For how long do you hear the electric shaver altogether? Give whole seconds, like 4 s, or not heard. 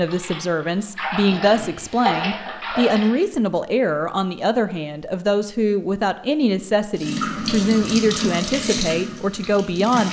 not heard.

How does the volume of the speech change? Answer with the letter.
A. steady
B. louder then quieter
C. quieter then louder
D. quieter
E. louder
A.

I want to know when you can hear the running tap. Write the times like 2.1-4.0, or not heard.
0.0-3.2, 7.0-10.0.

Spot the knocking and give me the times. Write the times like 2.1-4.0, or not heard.
not heard.